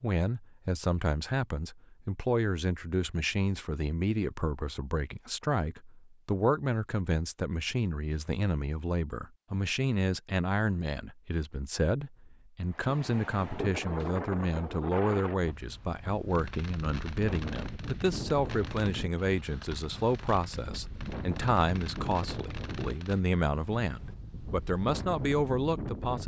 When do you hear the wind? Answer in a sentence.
You can hear the wind from 12.7 to 26.2 s.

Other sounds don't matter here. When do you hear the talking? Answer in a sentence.
You can hear the talking from 0.0 to 26.2 s.